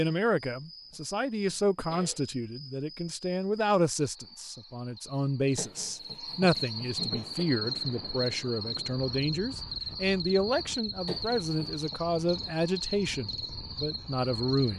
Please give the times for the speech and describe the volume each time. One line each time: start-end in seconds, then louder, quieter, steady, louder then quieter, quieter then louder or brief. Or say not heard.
0.0-14.7 steady.